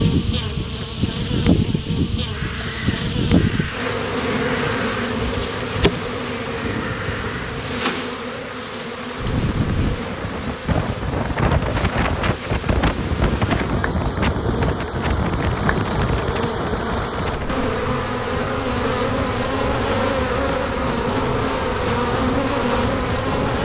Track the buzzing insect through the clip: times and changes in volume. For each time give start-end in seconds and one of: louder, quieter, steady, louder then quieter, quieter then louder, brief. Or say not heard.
0.0-23.6 quieter then louder.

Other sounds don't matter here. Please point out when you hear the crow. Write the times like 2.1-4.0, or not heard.
2.3-7.8.